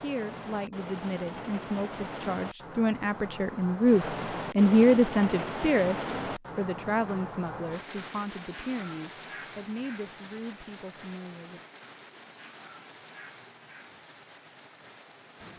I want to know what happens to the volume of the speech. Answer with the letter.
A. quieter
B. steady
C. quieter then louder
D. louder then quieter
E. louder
D.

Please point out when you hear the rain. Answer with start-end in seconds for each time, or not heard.
0.0-15.5.